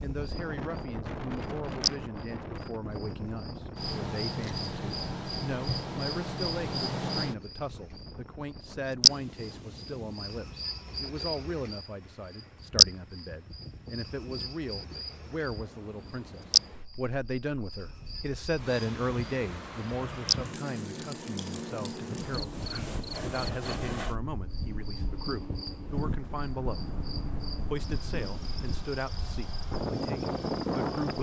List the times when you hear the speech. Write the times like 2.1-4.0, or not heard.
0.0-31.1.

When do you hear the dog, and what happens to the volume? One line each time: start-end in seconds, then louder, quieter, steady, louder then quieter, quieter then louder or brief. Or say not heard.
not heard.